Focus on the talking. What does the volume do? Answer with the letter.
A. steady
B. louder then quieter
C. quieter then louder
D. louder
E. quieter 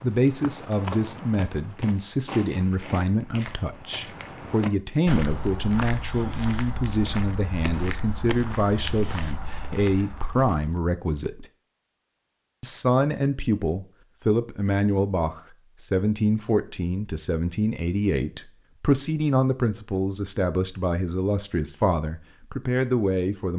A.